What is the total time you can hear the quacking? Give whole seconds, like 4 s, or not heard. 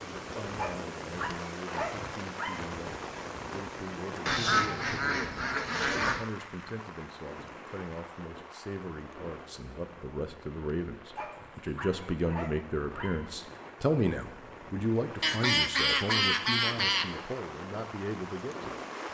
4 s.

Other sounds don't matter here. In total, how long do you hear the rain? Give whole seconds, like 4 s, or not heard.
19 s.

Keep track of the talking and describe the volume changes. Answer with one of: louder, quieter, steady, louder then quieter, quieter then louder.
louder then quieter.